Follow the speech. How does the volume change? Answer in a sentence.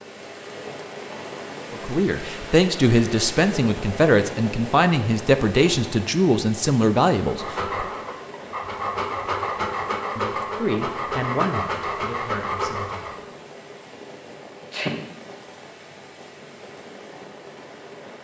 The loudness of the speech goes down.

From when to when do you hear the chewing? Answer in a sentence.
The chewing can't be heard in this clip.